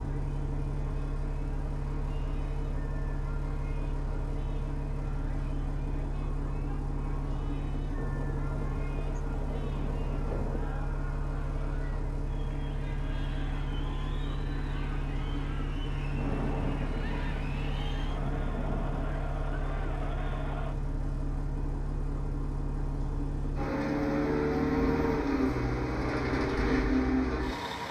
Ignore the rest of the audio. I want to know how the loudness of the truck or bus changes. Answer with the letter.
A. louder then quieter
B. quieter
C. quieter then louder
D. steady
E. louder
E.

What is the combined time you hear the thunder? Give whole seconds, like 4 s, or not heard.
6 s.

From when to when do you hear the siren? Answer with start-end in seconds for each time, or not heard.
not heard.